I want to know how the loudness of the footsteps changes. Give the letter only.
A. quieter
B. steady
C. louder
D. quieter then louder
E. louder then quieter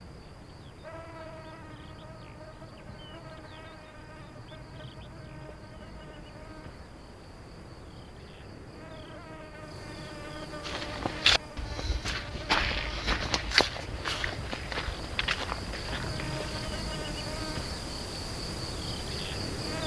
A.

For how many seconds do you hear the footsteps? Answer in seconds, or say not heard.
6 s.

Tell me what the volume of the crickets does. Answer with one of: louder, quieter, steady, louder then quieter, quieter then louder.
louder.